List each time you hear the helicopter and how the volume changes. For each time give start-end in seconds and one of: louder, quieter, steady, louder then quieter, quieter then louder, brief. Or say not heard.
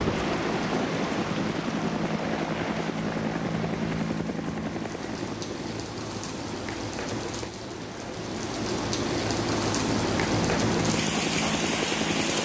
0.0-12.3 quieter then louder.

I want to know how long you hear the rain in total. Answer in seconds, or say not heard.
12 s.